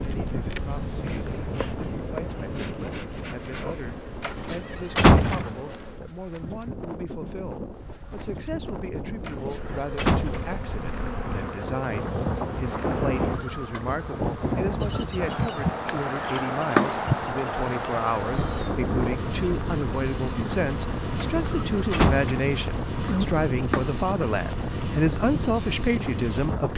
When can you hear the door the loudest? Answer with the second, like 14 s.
5 s.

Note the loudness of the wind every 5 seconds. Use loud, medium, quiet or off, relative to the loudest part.
medium, quiet, loud, loud, loud, loud.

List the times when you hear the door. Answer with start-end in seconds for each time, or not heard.
4.2-5.5, 9.2-10.6, 21.2-22.3.